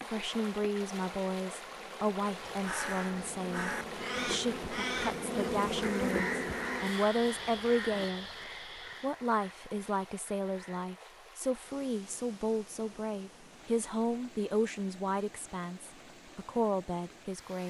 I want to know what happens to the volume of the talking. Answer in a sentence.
The volume of the talking stays about the same.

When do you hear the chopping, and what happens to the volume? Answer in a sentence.
The chopping can't be heard in this clip.